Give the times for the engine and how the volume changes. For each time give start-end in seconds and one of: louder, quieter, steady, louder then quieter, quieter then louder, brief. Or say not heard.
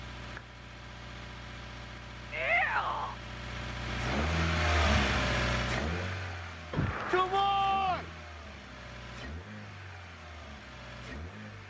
0.0-11.6 louder then quieter.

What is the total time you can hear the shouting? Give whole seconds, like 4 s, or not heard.
2 s.